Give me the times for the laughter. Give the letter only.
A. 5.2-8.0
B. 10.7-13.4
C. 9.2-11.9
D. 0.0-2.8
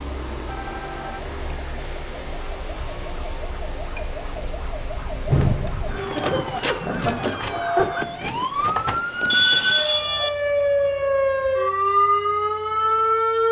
A.